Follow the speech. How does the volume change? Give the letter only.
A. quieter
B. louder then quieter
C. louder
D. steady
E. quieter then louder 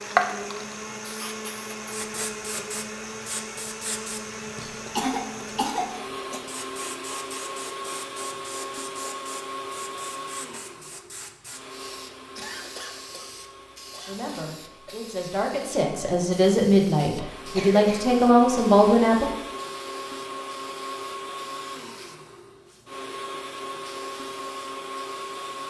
C.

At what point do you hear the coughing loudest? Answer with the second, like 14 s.
5 s.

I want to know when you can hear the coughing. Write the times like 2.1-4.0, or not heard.
5.0-6.4, 12.3-13.3, 13.9-14.9, 17.4-18.1.